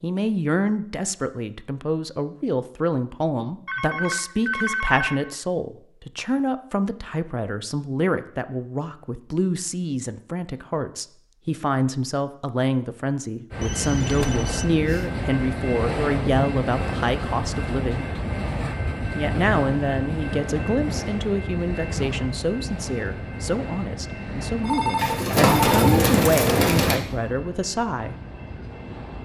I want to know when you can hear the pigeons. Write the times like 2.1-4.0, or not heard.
24.9-27.0.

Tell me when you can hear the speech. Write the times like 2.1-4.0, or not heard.
0.0-18.1, 19.1-28.1.